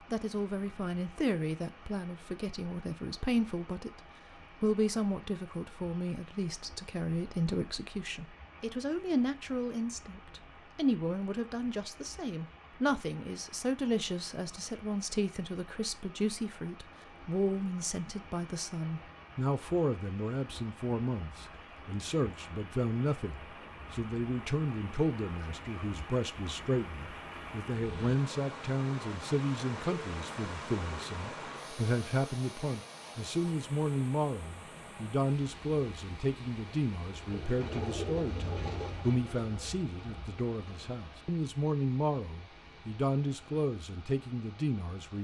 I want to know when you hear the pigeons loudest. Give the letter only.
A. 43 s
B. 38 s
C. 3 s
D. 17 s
B.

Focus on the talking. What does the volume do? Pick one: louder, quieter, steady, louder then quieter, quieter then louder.
steady.